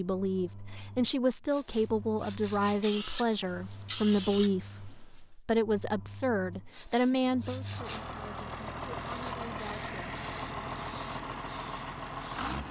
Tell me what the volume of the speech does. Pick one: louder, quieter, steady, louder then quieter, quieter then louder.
quieter.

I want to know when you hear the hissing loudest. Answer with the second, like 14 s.
4 s.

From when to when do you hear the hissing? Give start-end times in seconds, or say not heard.
2.5-5.2, 8.8-12.6.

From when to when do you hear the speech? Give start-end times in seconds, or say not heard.
0.0-10.2.